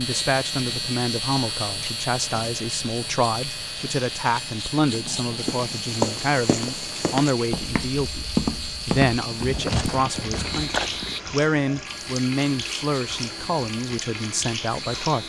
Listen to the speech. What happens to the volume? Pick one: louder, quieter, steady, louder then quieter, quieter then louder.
steady.